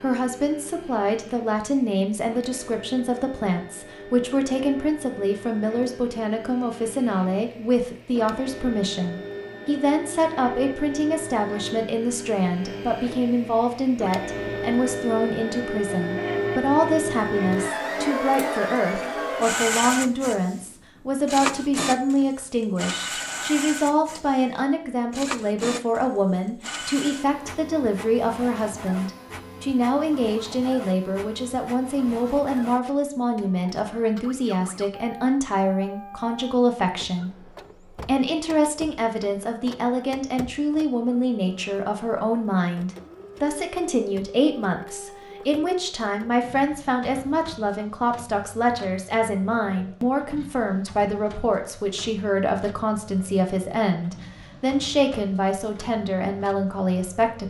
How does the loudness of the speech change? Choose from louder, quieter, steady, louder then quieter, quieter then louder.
steady.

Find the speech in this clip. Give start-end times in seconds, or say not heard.
0.0-57.4.